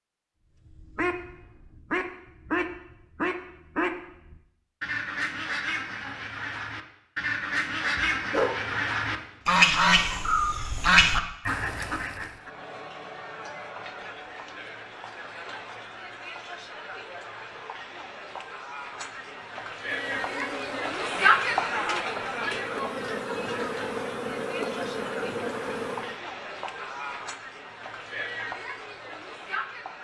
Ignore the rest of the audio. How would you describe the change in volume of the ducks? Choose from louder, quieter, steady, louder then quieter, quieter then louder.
louder.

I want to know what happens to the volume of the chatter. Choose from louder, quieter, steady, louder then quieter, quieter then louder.
louder then quieter.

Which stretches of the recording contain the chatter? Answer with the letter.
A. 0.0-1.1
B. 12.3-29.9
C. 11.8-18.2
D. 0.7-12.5
B.